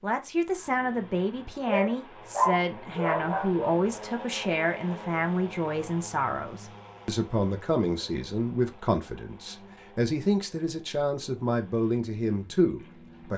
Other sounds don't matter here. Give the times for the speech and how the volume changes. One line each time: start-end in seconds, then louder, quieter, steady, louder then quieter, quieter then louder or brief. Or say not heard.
0.0-13.3 steady.